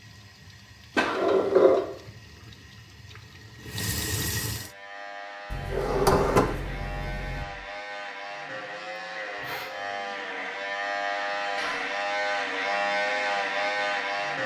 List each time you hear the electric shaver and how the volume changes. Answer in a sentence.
You can hear the electric shaver from 4.5 to 14.4 s, getting louder.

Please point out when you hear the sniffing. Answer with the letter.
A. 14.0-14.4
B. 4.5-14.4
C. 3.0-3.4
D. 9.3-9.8
D.